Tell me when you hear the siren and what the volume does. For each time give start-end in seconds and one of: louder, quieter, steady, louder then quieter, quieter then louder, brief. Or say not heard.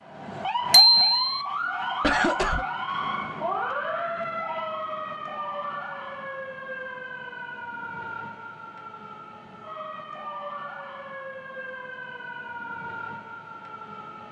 0.0-14.2 quieter.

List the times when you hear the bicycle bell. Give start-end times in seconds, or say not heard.
0.7-1.4.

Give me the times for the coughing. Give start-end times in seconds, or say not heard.
2.0-2.6.